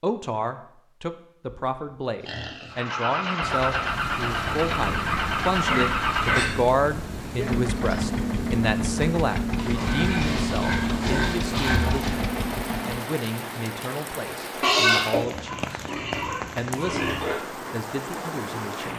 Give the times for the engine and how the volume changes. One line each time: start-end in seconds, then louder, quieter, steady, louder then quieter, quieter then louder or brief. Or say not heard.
2.7-13.1 steady.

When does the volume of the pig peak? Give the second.
15 s.